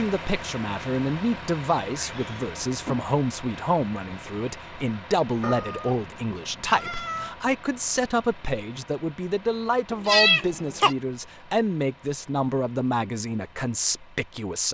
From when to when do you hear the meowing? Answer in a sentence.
You can hear the meowing from 1.9 to 3.0 s, from 5.4 to 7.3 s and from 9.9 to 10.9 s.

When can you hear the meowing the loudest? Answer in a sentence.
The loudest moment of the meowing is at 10 seconds.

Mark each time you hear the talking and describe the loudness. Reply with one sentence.
You can hear the talking from 0.0 to 14.6 s, at a steady volume.